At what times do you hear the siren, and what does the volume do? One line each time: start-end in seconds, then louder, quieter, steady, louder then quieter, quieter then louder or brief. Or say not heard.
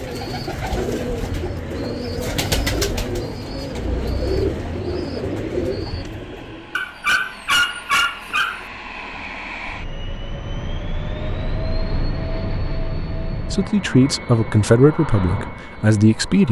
not heard.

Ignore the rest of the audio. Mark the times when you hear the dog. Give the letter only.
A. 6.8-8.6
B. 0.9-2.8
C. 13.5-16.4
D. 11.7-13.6
A.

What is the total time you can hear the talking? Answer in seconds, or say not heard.
3 s.